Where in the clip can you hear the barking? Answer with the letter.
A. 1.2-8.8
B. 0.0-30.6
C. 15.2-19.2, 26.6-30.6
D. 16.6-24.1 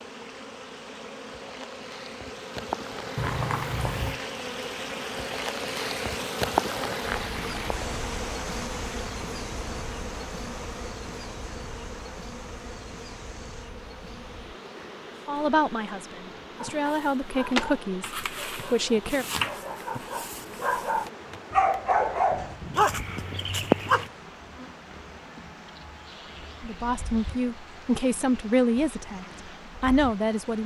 D.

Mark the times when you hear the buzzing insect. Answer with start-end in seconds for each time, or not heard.
0.0-30.6.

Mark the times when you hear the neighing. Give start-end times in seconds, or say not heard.
3.1-4.2.